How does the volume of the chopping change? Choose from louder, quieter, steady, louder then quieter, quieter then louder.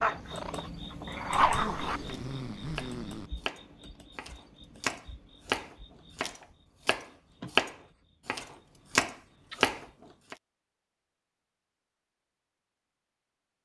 louder.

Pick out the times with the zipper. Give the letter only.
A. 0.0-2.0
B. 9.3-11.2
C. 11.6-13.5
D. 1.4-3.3
D.